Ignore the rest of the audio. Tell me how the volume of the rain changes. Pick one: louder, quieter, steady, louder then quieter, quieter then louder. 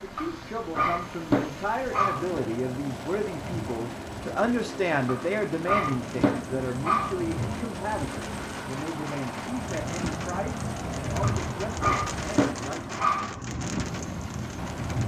louder.